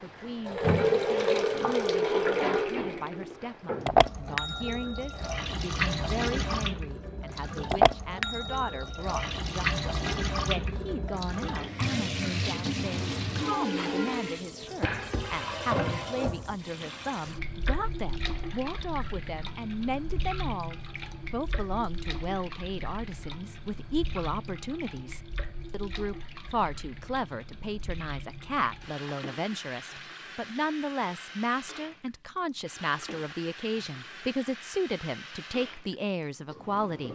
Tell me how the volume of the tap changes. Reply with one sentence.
The loudness of the tap goes down.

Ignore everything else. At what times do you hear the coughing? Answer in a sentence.
The coughing can't be heard in this clip.